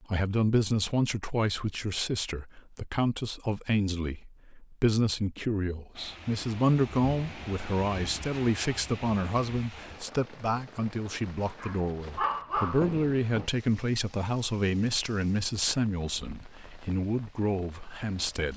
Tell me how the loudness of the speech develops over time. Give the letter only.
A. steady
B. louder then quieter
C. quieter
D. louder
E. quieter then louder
A.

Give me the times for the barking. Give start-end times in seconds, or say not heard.
11.6-12.8.